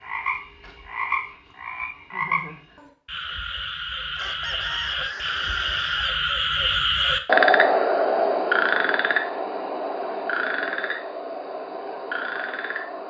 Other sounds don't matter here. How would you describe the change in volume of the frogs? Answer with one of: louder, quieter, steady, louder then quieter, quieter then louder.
louder then quieter.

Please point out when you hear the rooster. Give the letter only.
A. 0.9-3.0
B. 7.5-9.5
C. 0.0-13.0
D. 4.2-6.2
D.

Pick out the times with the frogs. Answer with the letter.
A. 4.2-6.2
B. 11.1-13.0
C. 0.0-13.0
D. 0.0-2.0
C.